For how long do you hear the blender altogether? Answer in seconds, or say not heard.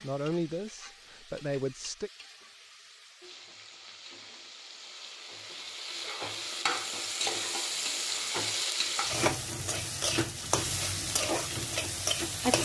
not heard.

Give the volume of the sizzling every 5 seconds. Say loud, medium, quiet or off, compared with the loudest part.
quiet, loud, loud.